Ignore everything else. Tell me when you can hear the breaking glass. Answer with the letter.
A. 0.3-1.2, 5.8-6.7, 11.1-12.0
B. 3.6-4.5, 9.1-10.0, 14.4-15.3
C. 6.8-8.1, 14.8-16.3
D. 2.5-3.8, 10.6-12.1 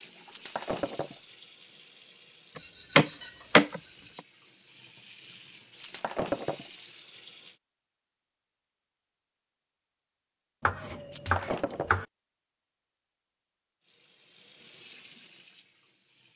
A.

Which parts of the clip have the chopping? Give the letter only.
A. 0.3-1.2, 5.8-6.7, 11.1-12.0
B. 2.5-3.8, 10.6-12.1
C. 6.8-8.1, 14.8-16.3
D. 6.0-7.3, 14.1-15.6
B.